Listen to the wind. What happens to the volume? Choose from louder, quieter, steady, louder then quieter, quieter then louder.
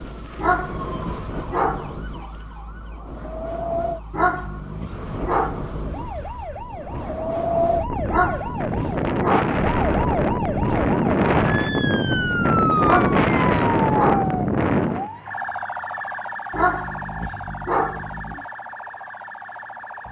louder.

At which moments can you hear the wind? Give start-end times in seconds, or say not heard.
0.0-15.1.